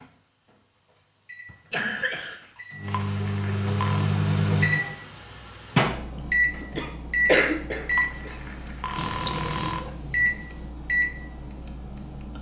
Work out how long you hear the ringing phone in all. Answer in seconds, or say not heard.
3 s.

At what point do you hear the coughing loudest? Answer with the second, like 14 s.
7 s.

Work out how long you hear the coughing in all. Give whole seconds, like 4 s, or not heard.
3 s.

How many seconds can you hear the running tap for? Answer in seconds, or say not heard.
2 s.